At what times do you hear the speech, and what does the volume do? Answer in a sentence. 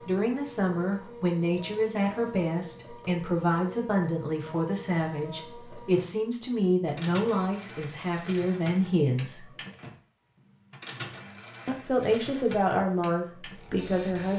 The speech can be heard from 0.1 to 9.5 s, at a steady volume; and briefly from 11.7 to 14.3 s.